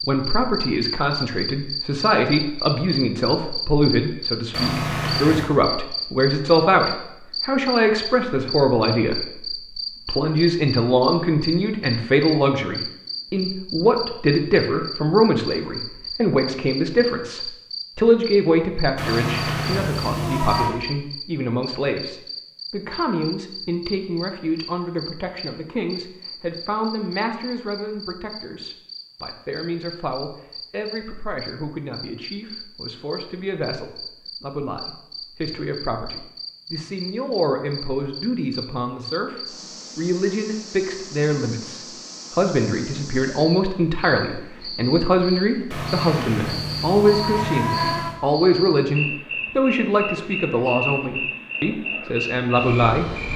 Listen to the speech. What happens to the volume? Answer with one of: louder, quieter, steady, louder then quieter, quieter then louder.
quieter then louder.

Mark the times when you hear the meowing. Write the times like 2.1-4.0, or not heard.
4.5-5.5, 18.9-20.8, 45.7-48.2.